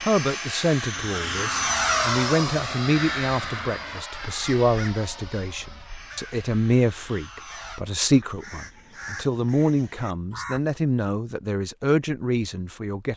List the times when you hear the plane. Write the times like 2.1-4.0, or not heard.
0.0-7.8.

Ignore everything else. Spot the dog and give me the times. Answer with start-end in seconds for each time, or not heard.
not heard.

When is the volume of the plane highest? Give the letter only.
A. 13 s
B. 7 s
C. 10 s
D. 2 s
D.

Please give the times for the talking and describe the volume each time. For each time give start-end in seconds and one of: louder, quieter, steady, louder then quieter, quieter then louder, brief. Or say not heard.
0.0-13.1 steady.